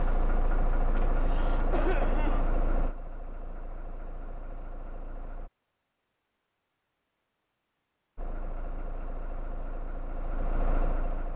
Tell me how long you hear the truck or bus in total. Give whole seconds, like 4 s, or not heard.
9 s.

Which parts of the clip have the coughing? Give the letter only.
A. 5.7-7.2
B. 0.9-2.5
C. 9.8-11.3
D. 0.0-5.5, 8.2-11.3
B.